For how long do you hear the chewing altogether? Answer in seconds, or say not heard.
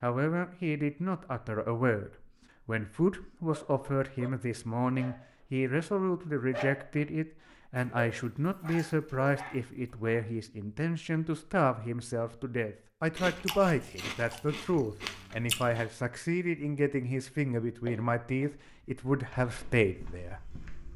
3 s.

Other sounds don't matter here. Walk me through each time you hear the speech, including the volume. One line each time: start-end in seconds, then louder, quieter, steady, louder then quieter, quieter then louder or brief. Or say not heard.
0.0-20.6 steady.